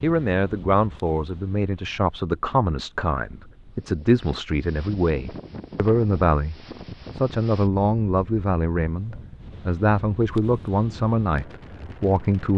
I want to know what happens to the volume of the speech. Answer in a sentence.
The volume of the speech stays about the same.